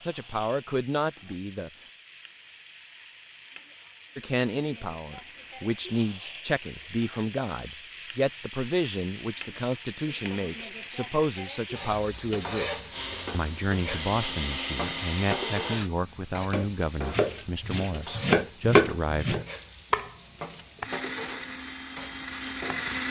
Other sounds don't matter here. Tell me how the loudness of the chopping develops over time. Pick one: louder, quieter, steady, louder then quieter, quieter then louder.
louder then quieter.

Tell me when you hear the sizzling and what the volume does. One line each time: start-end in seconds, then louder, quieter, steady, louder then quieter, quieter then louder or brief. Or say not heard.
0.0-22.9 louder then quieter.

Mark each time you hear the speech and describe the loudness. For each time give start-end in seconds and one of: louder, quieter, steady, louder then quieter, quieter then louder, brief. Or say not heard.
0.1-1.7 brief
4.2-19.4 steady.